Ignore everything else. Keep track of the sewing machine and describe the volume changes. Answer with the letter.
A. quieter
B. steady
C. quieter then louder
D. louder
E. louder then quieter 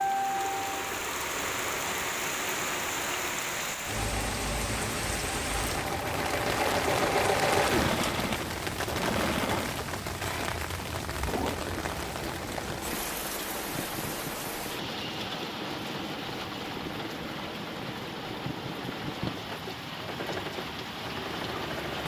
E.